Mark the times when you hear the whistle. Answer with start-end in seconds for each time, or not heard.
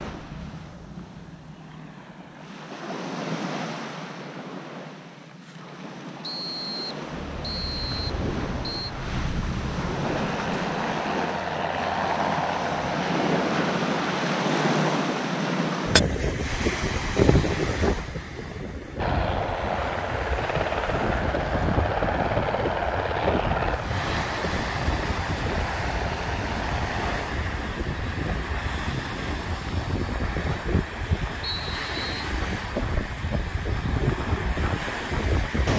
6.2-8.9, 31.4-32.3.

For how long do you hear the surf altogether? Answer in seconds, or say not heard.
36 s.